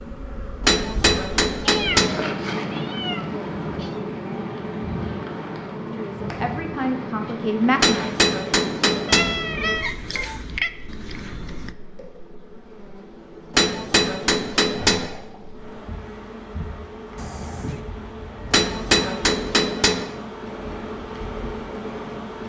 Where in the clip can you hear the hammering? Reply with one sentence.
The hammering can be heard from 0.7 to 2.2 s, from 7.8 to 9.3 s, from 13.6 to 15.1 s and from 18.5 to 20.1 s.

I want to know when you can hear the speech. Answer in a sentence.
The speech can be heard from 5.9 to 8.0 s.